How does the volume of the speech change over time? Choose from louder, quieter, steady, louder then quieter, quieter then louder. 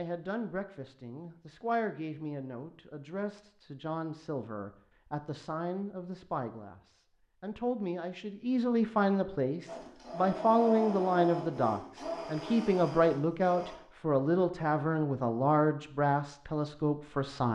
louder.